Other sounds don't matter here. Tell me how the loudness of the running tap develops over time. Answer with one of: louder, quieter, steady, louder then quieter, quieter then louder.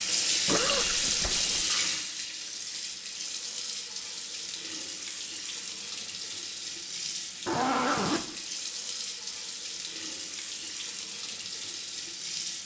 quieter.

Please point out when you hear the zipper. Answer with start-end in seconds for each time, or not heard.
0.5-1.6, 7.5-8.2.